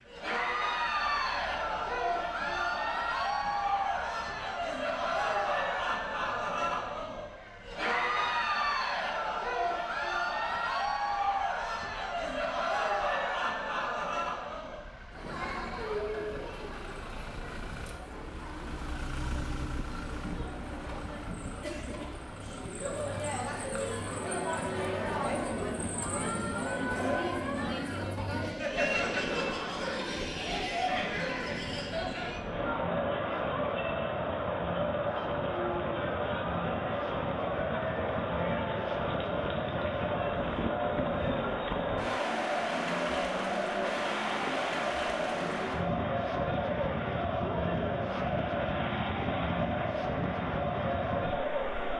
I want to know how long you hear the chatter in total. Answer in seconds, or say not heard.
52 s.